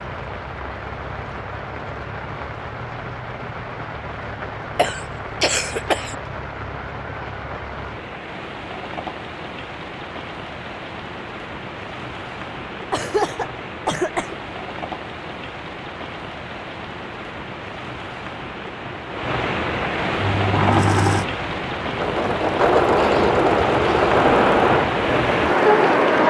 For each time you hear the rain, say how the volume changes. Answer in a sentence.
You can hear the rain from 0.0 to 26.2 s, getting louder.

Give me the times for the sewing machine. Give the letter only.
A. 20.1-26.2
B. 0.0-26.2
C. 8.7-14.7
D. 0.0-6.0
A.